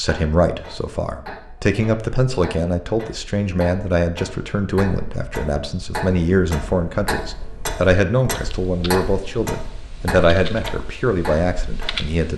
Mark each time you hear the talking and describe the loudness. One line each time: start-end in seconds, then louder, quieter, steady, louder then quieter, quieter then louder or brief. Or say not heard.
0.0-12.3 steady.